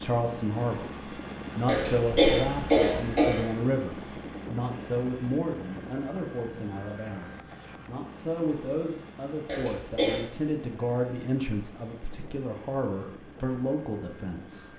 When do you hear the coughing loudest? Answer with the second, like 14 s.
2 s.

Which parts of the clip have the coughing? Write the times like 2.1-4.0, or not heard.
1.6-3.5, 9.4-10.2.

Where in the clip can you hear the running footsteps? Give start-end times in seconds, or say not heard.
not heard.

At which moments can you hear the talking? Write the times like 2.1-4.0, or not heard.
0.0-14.7.